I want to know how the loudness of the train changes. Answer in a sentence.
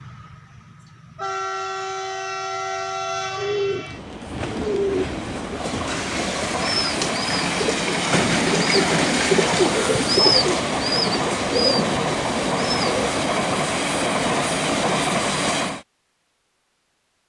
The loudness of the train goes up.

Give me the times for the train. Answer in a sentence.
You can hear the train from 0.0 to 15.8 s.